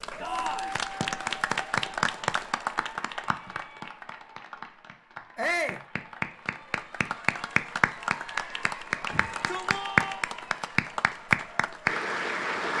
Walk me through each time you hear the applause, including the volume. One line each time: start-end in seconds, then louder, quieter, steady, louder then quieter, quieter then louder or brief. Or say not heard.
0.0-12.7 quieter then louder.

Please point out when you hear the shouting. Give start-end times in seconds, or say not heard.
0.2-0.8, 5.3-5.8, 9.1-10.2.